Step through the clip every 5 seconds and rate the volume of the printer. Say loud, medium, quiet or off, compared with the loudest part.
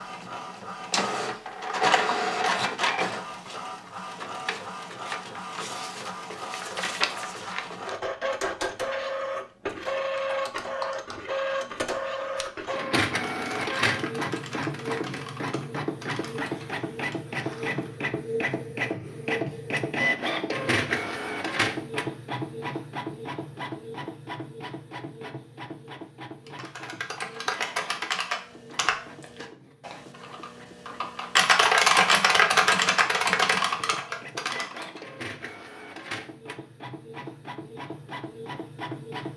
loud, loud, loud, loud, loud, quiet, quiet, medium.